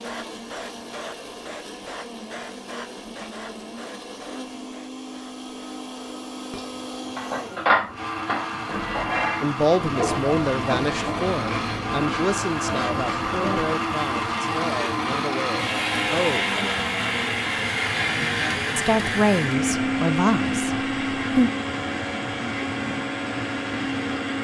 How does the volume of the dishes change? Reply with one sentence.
The volume of the dishes goes down.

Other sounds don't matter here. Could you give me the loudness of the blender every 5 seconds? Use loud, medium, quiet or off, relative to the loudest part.
quiet, medium, loud, loud, loud.